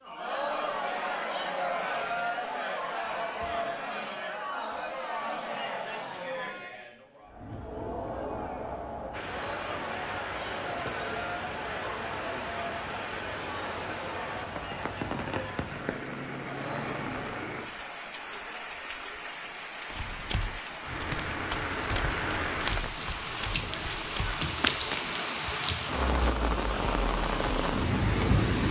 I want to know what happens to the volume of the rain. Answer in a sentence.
The volume of the rain goes up.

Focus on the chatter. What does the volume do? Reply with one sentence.
The loudness of the chatter goes down.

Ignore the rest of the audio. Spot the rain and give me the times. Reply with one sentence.
You can hear the rain from 9.1 to 28.6 s.